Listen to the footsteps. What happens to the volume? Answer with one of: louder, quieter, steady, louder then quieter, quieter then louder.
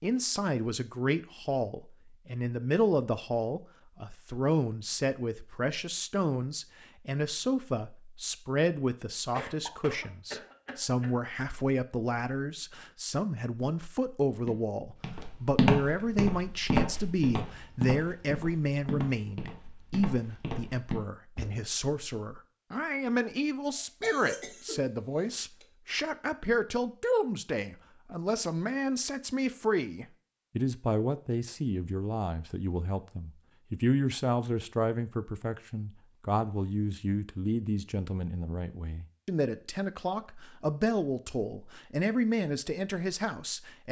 quieter.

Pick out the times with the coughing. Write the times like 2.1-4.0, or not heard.
9.3-11.1, 23.8-24.8.